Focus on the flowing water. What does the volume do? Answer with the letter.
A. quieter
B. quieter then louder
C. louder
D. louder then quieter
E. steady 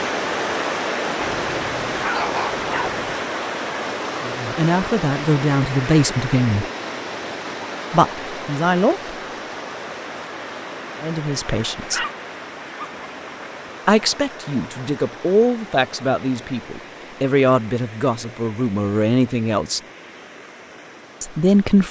A.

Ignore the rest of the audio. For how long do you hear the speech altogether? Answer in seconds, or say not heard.
11 s.